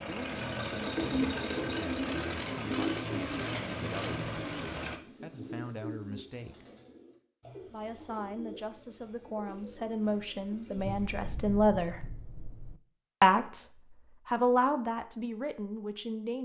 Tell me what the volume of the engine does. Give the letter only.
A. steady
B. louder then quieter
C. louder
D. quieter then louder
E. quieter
A.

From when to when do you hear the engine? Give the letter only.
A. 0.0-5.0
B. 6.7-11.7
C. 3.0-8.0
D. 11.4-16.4
A.